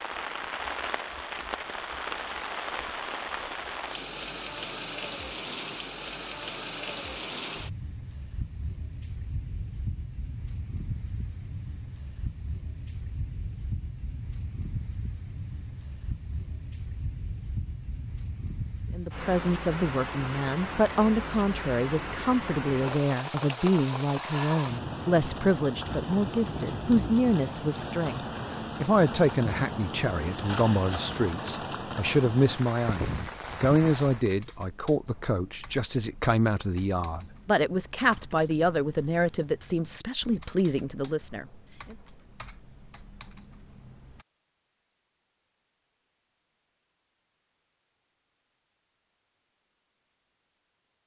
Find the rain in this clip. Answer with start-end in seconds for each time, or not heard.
0.0-34.2.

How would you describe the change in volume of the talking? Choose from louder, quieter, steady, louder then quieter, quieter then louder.
steady.